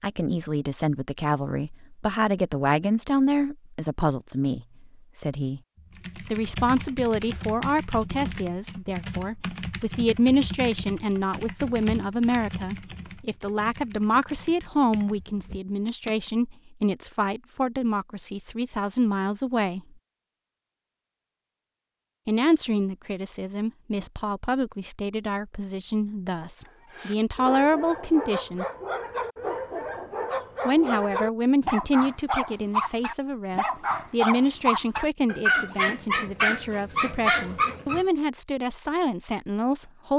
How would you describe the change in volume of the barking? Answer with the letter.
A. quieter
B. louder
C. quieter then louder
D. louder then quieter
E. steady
B.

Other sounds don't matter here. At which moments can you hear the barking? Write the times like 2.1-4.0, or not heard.
26.6-38.0.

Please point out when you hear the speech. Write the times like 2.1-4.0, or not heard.
0.0-5.6, 6.3-19.8, 22.2-28.6, 30.6-40.1.